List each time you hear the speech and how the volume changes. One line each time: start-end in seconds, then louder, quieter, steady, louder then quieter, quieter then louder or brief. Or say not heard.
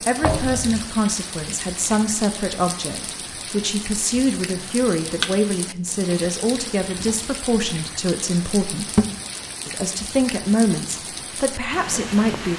0.1-8.8 steady
9.7-12.5 brief.